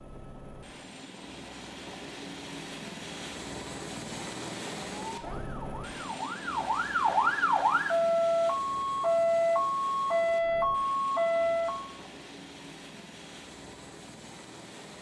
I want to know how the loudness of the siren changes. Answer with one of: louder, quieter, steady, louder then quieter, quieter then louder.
louder.